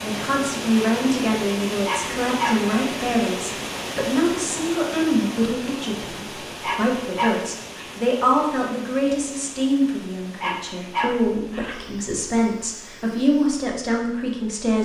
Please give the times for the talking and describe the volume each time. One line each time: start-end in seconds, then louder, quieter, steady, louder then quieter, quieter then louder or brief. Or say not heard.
0.0-14.7 steady.